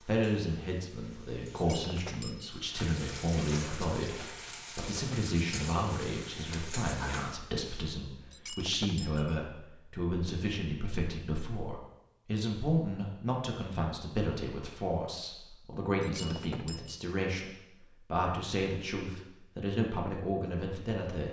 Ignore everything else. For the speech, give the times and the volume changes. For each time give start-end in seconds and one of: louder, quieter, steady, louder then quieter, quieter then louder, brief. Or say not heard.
0.0-21.2 steady.